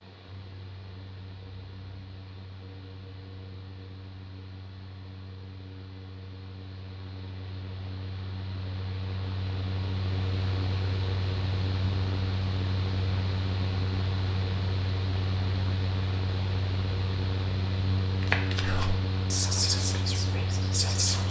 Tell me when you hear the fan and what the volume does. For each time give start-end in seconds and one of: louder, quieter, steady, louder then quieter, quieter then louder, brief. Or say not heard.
0.0-21.2 louder.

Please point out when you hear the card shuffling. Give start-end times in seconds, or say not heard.
18.2-18.9.